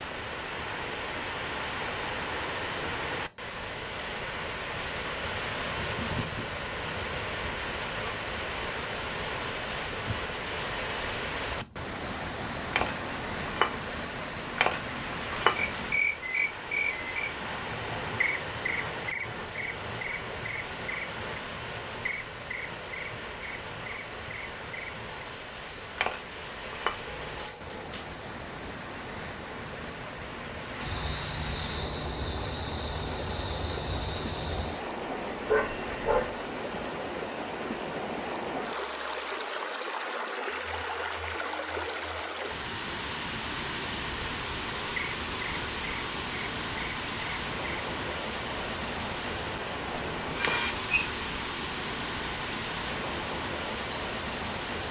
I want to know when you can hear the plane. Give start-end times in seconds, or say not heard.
not heard.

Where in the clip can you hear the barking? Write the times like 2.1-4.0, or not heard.
35.5-36.3.